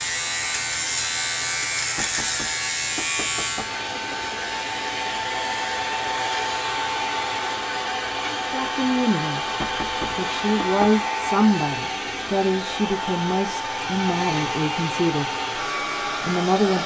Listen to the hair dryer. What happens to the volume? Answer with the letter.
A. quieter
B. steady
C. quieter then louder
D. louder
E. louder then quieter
D.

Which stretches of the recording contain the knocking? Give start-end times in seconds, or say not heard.
1.9-4.2, 9.6-10.9.